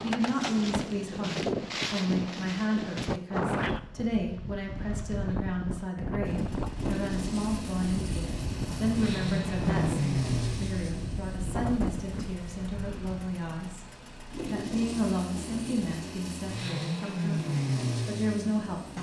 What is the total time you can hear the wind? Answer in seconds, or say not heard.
13 s.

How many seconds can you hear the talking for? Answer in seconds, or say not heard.
18 s.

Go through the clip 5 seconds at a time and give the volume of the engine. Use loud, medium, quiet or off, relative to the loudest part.
off, loud, loud, loud.